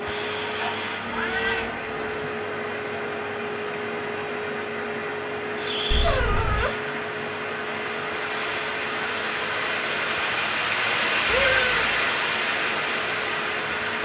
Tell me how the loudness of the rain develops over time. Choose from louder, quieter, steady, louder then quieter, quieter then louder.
louder.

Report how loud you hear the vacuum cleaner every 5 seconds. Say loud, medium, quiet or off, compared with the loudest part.
loud, loud, medium.